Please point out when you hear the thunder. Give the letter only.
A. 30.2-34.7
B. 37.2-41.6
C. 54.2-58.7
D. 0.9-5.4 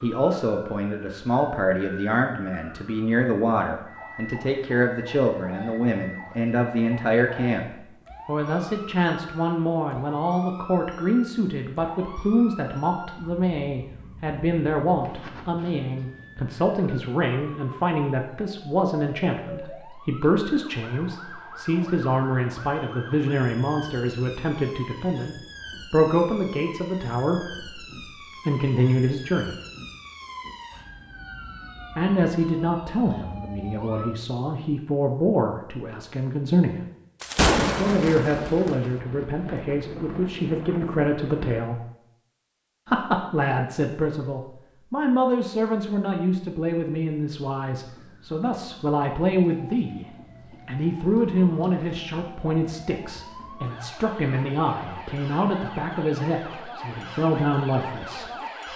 B.